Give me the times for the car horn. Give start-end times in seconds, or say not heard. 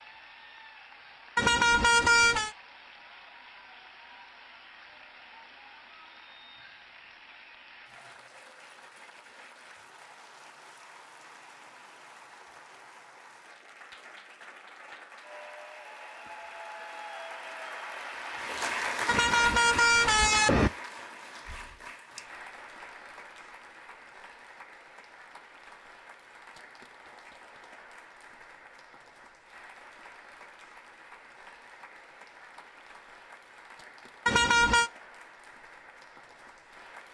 1.4-2.5, 19.1-20.7, 34.2-34.9.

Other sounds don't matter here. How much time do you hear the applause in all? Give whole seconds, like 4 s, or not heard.
37 s.